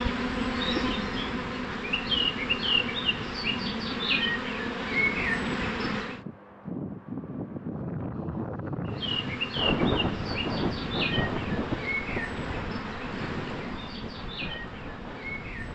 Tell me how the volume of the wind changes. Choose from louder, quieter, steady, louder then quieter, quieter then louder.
louder then quieter.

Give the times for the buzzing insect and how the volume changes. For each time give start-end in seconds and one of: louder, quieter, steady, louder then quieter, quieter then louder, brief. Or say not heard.
0.0-6.2 steady
8.8-15.6 quieter.